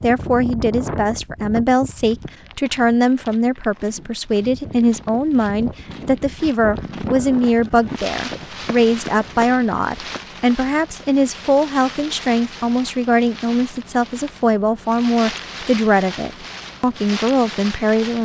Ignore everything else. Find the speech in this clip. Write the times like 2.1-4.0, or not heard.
0.0-18.2.